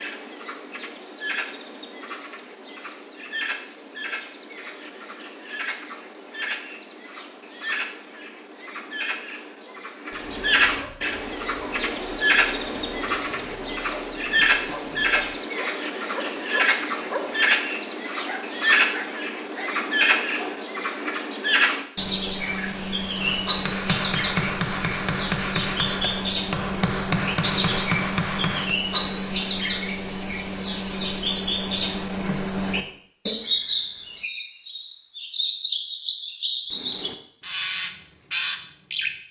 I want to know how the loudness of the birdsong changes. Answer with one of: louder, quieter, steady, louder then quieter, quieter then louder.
louder.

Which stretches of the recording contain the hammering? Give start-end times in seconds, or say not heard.
23.1-28.8.